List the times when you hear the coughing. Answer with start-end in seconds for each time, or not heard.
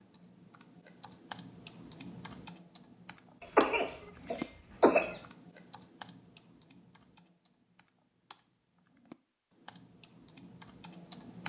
3.5-5.2.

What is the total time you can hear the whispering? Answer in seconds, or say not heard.
not heard.